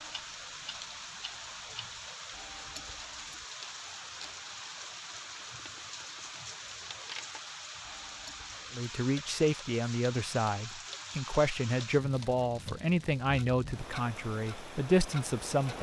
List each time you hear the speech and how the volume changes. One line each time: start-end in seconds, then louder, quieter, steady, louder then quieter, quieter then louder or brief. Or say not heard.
8.7-15.7 steady.